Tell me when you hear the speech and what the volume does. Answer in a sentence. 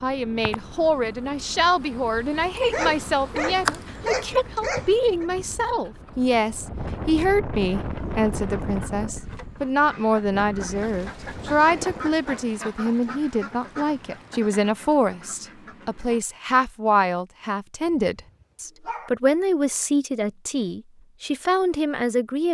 You can hear the speech from 0.0 to 22.5 s, at a steady volume.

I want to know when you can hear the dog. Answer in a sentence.
The dog can be heard from 2.7 to 5.2 s and from 18.1 to 19.1 s.